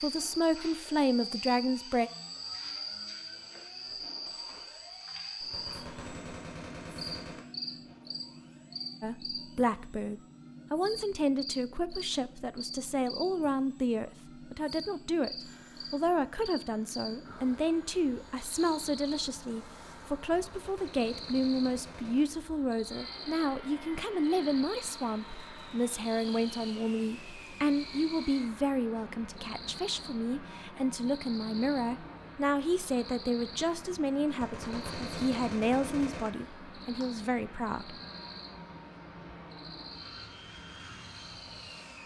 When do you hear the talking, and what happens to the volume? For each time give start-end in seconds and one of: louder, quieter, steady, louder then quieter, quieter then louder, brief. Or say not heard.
0.0-2.1 brief
9.0-38.0 steady.